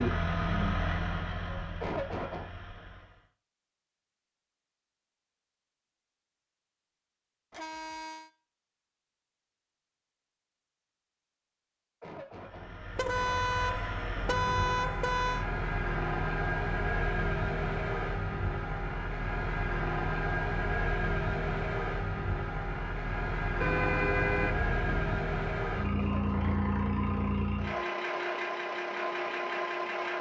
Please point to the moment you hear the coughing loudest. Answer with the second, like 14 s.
2 s.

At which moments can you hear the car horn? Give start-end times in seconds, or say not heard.
7.5-8.3, 12.9-15.4, 23.6-25.0.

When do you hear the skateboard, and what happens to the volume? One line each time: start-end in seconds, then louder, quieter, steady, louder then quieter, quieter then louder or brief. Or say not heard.
not heard.